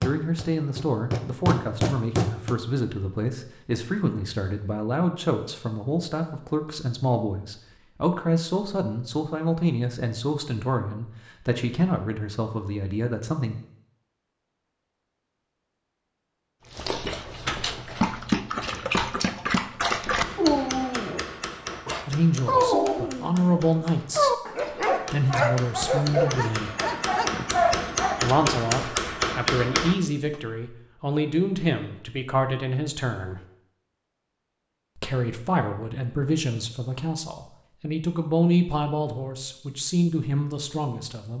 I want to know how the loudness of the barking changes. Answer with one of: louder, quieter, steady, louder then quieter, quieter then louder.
steady.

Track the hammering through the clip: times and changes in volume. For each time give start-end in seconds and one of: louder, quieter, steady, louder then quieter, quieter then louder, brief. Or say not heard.
0.0-2.5 brief
20.2-30.4 quieter then louder.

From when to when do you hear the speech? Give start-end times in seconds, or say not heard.
0.0-13.6, 22.1-26.7, 28.2-33.4, 35.0-41.3.